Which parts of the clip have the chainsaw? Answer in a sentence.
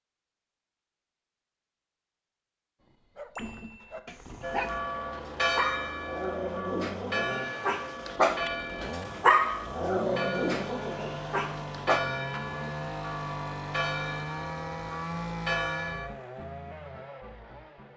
The chainsaw can be heard from 3.4 to 17.9 s.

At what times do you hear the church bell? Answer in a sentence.
You can hear the church bell from 4.4 to 16.1 s.